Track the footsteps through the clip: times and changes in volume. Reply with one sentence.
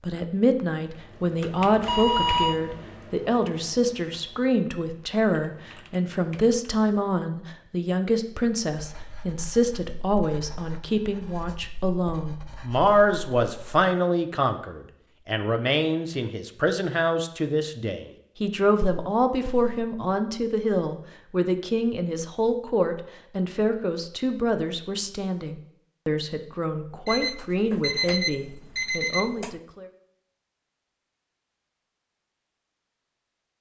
You can't hear the footsteps here.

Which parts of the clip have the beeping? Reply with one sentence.
The beeping can be heard from 1.9 to 2.6 s, from 18.8 to 19.9 s and from 27.1 to 29.6 s.